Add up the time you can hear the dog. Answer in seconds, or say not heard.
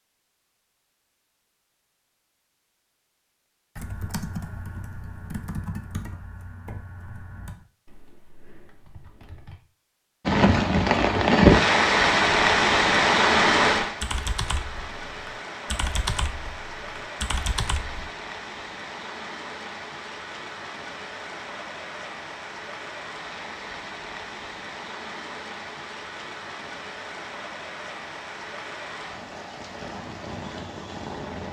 not heard.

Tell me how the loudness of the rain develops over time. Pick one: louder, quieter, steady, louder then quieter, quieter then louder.
quieter.